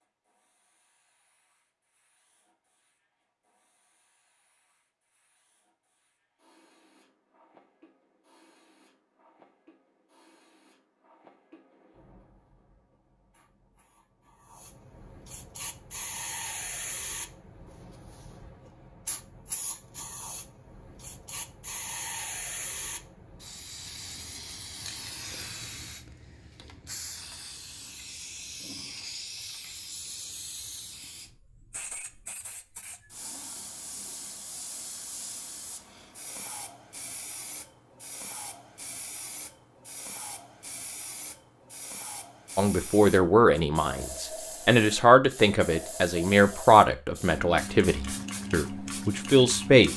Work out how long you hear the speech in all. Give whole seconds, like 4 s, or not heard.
7 s.